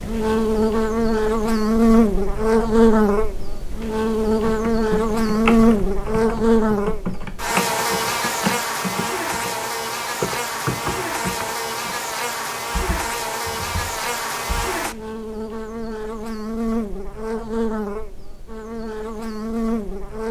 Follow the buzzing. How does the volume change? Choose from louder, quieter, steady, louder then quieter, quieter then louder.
quieter.